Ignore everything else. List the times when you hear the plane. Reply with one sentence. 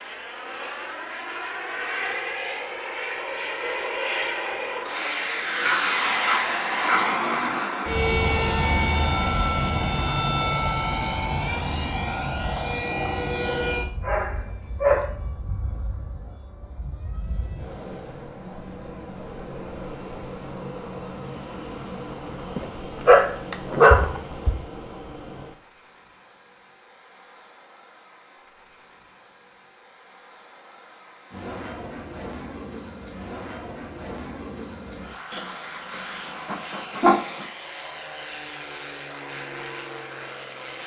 You can hear the plane from 0.0 to 40.8 s.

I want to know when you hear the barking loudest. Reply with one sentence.
The loudest moment of the barking is at 24 seconds.